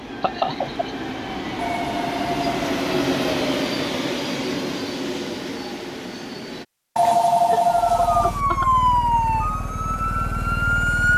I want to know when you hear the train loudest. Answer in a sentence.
The loudest moment of the train is at 3 seconds.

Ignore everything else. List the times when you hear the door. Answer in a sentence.
You can't hear the door here.